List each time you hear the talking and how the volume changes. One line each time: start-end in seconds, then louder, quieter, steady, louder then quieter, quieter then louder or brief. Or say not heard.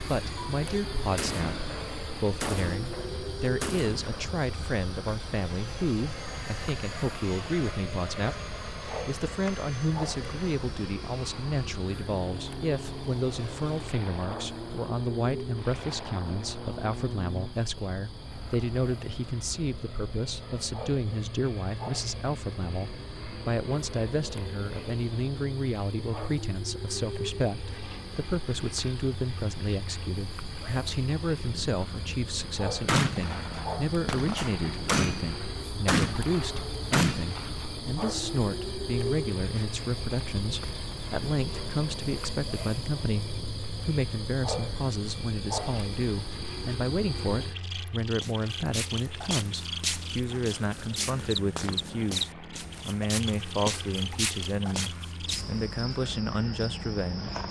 0.0-57.4 steady.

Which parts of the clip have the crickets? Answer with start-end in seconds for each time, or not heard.
0.0-57.4.